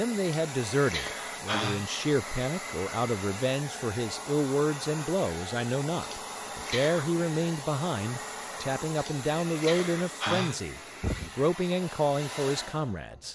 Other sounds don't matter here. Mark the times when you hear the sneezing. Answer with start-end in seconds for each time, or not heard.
0.2-1.9, 6.0-7.0, 8.9-10.6.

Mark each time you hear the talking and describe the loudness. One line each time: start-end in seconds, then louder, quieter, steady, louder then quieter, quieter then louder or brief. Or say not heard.
0.0-13.3 steady.